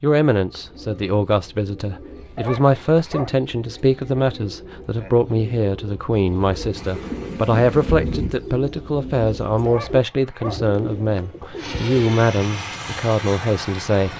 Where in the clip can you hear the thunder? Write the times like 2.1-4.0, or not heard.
6.8-8.3.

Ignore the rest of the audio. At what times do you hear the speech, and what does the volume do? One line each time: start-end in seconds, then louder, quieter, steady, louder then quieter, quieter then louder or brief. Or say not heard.
0.0-14.1 steady.